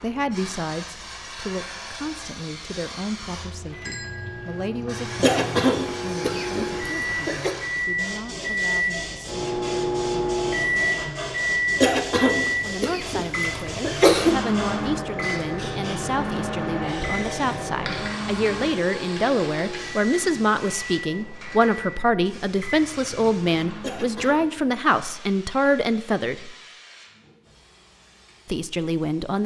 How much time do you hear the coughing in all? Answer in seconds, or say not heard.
6 s.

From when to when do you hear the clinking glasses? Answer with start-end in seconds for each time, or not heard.
3.9-4.7.